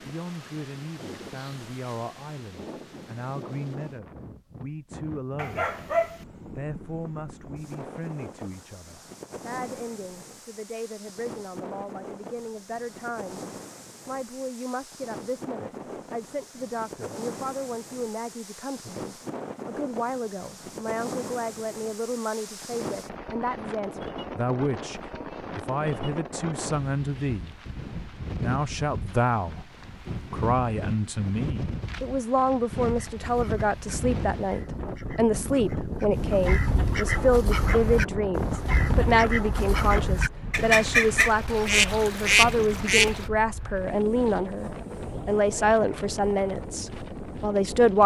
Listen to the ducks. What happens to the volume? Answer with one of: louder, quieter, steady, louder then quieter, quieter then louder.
louder.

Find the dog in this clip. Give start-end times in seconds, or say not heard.
5.3-6.2.